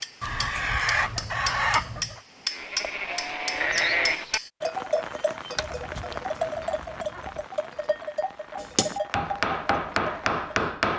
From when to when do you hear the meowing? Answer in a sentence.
You can't hear the meowing here.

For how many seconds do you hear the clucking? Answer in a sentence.
The clucking can be heard for 4 seconds in total.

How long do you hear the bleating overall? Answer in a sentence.
You can hear the bleating for 8 seconds altogether.